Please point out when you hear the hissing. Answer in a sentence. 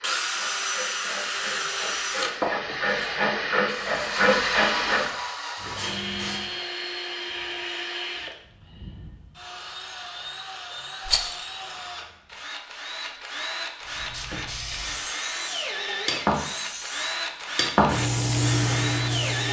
You can hear the hissing from 0.0 to 6.6 s and from 13.8 to 19.4 s.